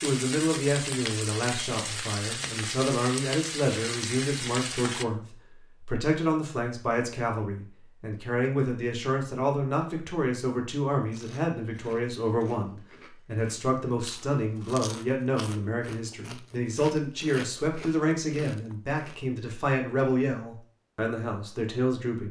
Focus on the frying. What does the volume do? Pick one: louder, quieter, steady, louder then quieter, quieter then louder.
steady.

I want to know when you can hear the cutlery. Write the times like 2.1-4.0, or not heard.
not heard.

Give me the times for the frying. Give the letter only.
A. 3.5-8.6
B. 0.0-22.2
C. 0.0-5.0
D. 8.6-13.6
C.